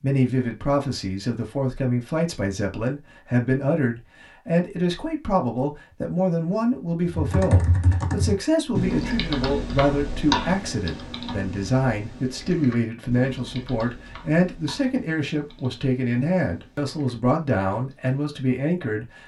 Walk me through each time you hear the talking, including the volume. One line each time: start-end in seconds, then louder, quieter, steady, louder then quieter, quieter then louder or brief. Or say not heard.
0.0-19.2 steady.